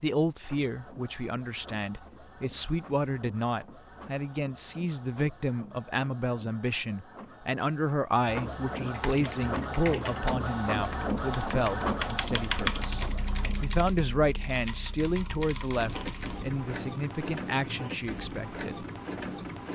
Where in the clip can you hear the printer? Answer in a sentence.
You can hear the printer from 0.2 to 13.7 s and from 15.7 to 19.7 s.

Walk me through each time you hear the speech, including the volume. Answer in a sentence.
You can hear the speech from 0.0 to 18.9 s, at a steady volume.